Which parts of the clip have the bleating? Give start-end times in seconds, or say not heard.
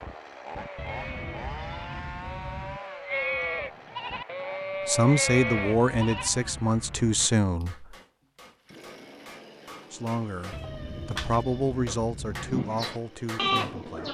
0.5-6.3, 12.4-14.0.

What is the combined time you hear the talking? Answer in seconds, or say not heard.
7 s.